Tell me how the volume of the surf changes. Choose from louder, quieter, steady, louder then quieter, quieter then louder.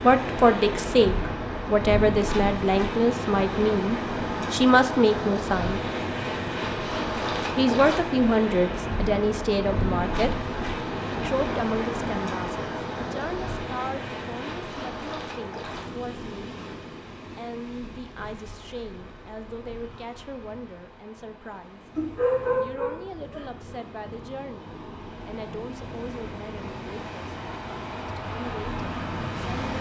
quieter then louder.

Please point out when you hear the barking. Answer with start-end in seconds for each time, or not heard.
21.9-23.4.